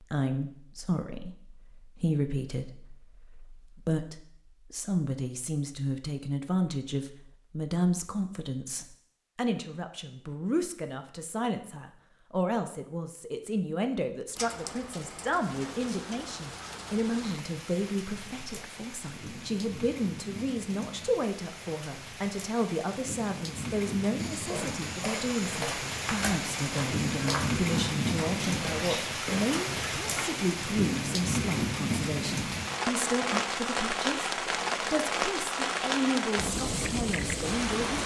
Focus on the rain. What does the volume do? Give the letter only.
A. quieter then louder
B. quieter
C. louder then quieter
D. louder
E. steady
D.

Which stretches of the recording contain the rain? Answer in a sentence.
You can hear the rain from 14.3 to 38.0 s.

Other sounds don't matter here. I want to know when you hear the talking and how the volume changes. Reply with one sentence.
You can hear the talking from 0.0 to 38.0 s, at a steady volume.